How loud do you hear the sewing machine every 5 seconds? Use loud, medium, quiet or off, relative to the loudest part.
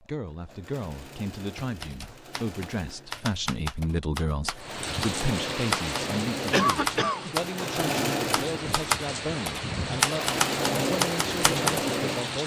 quiet, loud, loud.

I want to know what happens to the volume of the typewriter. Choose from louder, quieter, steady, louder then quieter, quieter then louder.
louder.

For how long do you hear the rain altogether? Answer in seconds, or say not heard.
8 s.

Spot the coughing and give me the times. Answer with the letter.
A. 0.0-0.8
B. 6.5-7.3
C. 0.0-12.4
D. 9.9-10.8
B.